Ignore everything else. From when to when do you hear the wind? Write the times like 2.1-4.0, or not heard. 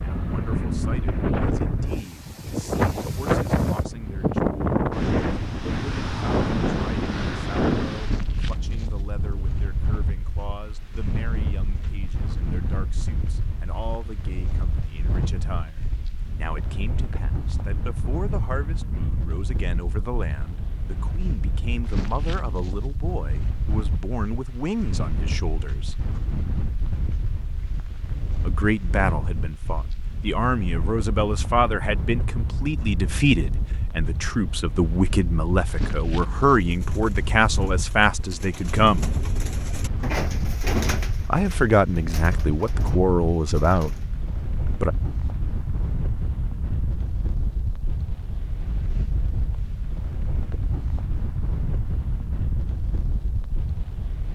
0.0-54.3.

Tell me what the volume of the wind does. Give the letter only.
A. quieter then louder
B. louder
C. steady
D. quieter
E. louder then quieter
D.